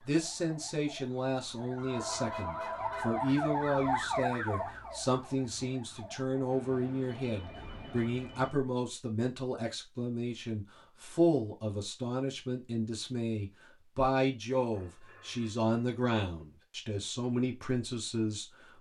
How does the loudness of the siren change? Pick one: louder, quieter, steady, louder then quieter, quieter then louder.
louder then quieter.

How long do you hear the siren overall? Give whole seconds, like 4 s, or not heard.
8 s.